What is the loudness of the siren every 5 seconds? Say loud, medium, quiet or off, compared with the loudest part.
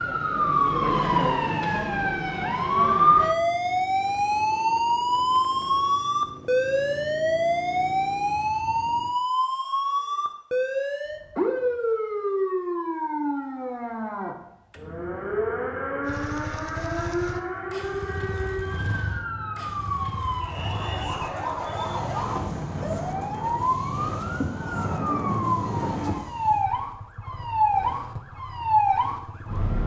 loud, loud, medium, medium, medium, loud.